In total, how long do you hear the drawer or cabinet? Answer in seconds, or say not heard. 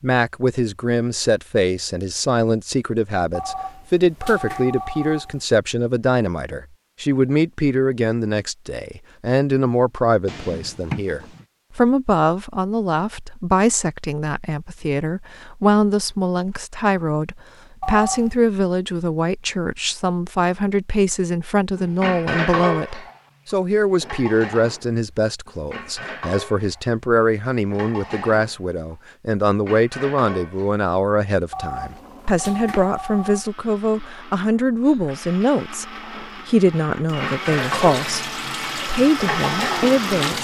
2 s.